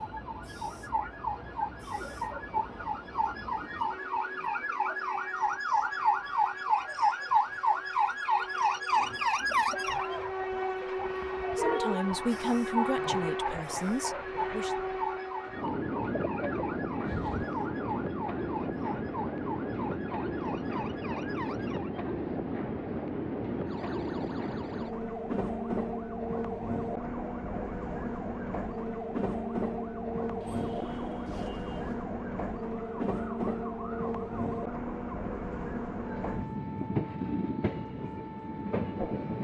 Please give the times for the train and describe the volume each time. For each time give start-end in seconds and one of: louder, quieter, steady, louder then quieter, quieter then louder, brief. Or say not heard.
0.0-39.3 louder.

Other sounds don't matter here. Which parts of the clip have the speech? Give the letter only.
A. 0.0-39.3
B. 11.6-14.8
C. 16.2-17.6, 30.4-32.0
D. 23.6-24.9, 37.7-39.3
B.